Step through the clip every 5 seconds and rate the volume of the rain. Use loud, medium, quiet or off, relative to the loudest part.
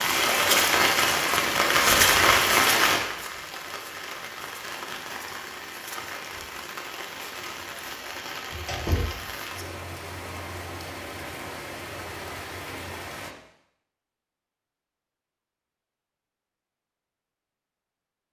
loud, quiet, quiet, off.